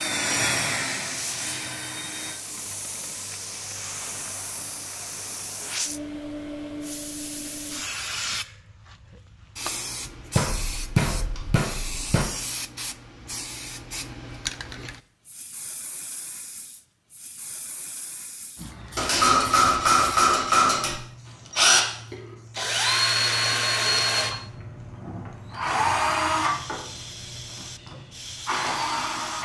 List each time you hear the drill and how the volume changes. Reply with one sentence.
You can hear the drill briefly from 0.0 to 2.4 s; and from 21.5 to 29.4 s, getting quieter.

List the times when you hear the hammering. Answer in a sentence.
The hammering can be heard from 10.3 to 12.2 s and from 18.9 to 20.9 s.